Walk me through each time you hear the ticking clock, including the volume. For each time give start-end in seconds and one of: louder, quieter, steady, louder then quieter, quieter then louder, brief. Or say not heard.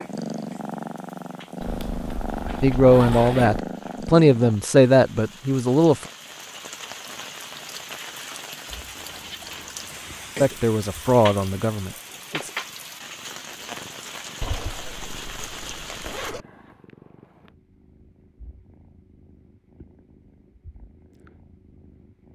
not heard.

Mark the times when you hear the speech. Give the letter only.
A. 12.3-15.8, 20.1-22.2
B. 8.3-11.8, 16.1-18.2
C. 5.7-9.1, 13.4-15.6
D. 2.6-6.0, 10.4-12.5
D.